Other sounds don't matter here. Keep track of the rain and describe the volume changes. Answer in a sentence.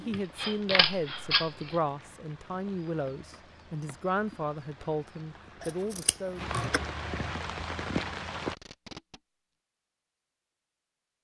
The volume of the rain goes up.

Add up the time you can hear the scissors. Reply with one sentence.
The scissors can be heard for 3 seconds in total.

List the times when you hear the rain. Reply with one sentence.
The rain can be heard from 0.0 to 8.6 s.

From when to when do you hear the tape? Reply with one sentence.
The tape can be heard from 8.3 to 9.2 s.